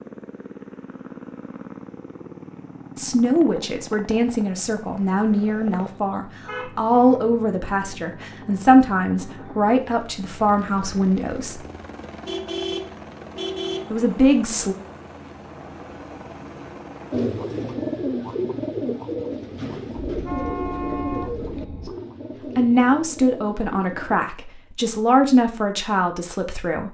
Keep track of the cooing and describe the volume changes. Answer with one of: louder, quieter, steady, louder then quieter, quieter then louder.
quieter.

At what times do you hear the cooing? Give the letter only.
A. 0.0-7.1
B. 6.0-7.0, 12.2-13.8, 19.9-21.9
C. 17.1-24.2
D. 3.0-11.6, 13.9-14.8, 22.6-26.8
C.